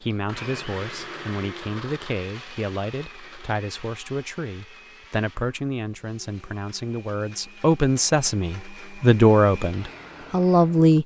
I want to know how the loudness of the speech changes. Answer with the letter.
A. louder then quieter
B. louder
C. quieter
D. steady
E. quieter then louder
B.